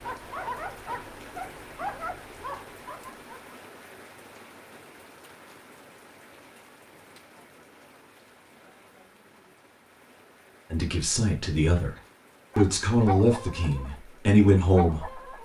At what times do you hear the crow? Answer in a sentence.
You can't hear the crow here.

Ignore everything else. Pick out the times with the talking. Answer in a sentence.
The talking can be heard from 10.7 to 11.9 s and from 12.6 to 15.2 s.